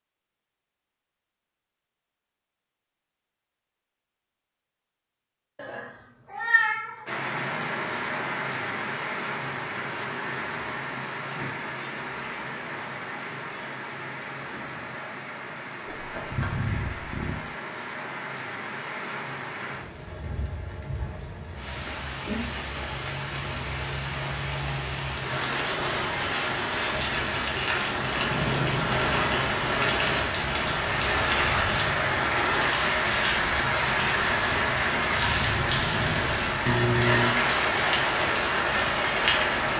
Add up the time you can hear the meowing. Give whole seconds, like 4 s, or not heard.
4 s.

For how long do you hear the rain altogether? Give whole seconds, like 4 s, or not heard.
33 s.